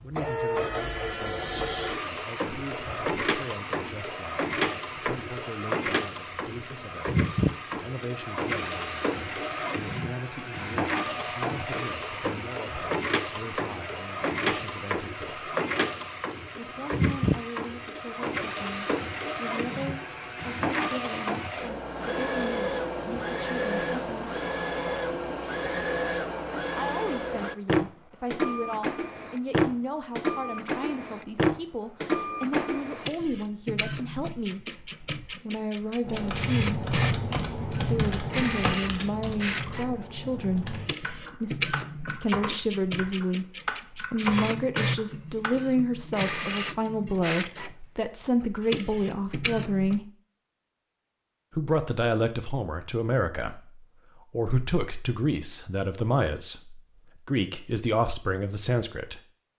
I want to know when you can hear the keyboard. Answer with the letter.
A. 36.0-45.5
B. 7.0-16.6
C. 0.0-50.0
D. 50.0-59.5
A.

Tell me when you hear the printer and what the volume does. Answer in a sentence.
The printer can be heard from 0.0 to 50.0 s, at a steady volume.